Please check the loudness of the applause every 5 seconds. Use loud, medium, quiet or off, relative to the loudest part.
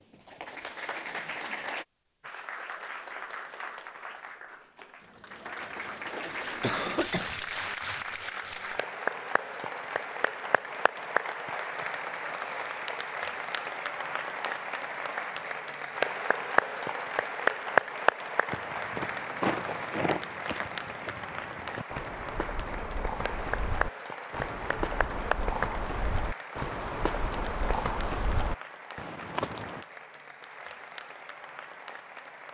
medium, medium, medium, loud, medium, medium, quiet.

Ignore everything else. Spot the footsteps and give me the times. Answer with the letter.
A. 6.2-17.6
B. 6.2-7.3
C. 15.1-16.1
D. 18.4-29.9
D.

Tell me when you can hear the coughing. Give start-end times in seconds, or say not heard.
6.2-7.3.